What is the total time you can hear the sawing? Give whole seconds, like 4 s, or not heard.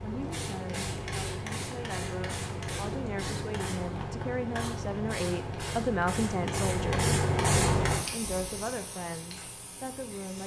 not heard.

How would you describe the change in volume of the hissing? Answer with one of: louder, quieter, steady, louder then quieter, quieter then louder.
louder then quieter.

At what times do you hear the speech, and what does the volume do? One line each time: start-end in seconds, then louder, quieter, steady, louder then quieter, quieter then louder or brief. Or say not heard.
0.0-7.1 louder
8.1-10.4 brief.